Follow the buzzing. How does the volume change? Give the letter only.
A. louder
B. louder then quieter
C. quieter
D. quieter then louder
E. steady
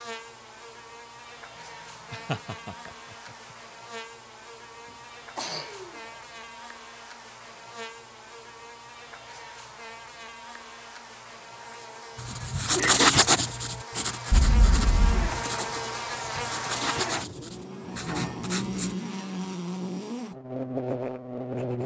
A.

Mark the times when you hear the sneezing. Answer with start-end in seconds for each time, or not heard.
5.3-6.0, 14.3-15.4.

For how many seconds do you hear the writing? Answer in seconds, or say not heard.
7 s.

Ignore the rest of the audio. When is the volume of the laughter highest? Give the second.
13 s.